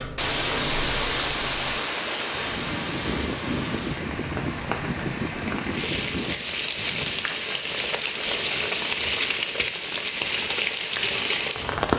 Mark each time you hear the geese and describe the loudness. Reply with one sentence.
The geese can be heard from 2.3 to 7.2 s, at a steady volume.